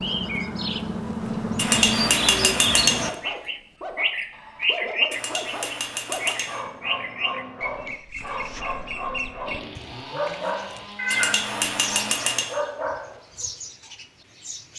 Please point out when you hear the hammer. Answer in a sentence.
The hammer can be heard from 1.6 to 3.1 s, from 5.1 to 6.7 s and from 11.1 to 12.6 s.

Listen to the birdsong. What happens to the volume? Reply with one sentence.
The loudness of the birdsong goes down.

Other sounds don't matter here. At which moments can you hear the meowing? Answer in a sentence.
The meowing can be heard from 10.9 to 11.4 s.